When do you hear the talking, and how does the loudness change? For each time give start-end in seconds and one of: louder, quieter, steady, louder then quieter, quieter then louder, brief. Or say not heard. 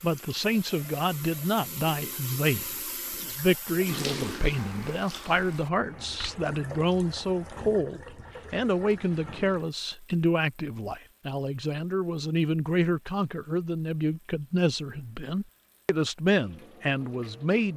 0.0-17.7 steady.